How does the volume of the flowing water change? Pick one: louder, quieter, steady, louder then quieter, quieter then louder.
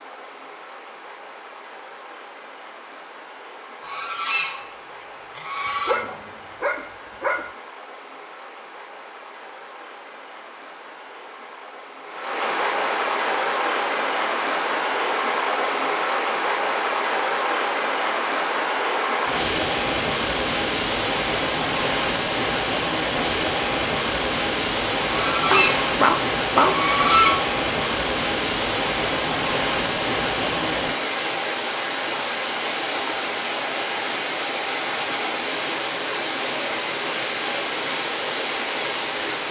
louder.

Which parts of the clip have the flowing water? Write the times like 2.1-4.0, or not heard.
0.0-39.4.